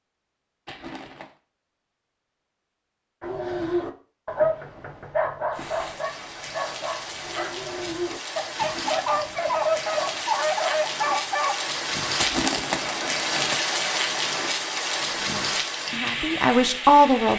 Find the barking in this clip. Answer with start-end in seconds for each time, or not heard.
3.2-11.6.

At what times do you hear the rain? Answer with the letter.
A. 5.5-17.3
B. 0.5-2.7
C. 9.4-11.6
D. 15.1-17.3
A.